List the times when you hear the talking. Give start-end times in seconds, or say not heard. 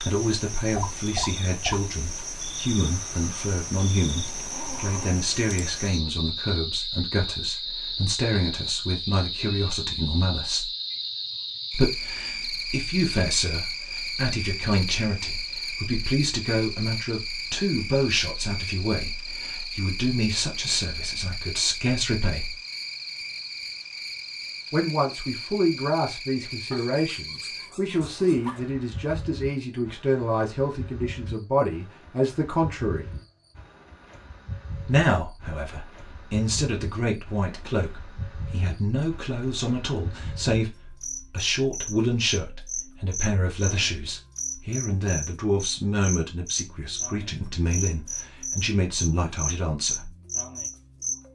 0.0-10.7, 11.7-22.6, 24.7-33.0, 34.9-50.1.